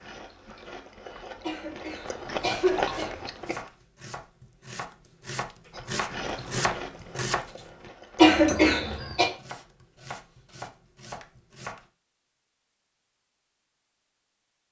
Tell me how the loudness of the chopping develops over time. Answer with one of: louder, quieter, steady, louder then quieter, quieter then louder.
louder then quieter.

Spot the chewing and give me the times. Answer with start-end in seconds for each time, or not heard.
0.0-3.7, 5.7-9.3.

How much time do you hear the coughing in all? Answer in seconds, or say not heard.
3 s.